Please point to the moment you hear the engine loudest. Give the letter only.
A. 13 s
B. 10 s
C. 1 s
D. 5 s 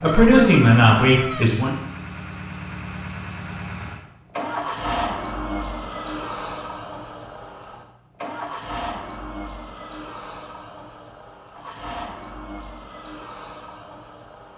D.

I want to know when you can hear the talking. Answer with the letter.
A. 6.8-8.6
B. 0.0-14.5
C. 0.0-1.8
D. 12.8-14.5
C.